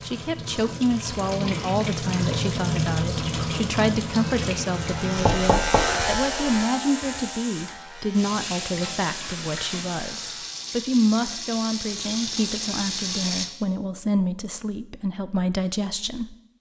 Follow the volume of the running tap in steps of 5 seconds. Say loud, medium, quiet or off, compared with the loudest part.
loud, medium, loud, off.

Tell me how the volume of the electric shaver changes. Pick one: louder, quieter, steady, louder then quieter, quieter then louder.
quieter.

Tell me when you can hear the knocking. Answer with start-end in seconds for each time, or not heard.
5.2-6.6.